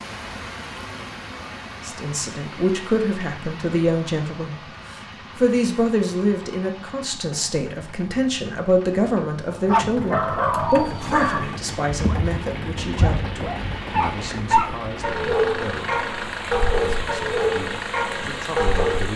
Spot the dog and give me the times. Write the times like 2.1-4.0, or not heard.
9.7-19.1.